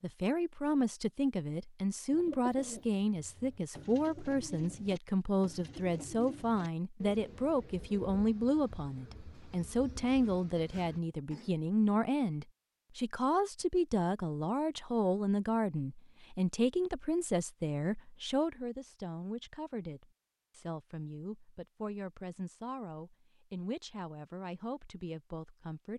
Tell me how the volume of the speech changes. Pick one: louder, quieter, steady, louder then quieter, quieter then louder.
quieter.